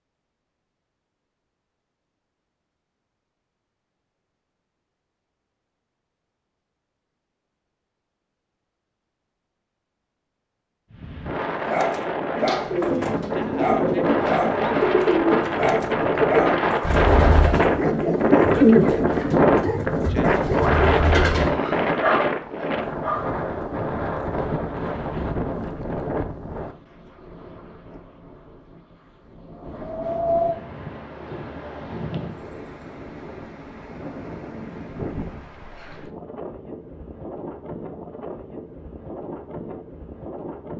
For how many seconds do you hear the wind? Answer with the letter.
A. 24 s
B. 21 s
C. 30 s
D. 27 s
C.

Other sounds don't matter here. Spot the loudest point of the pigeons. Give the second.
19 s.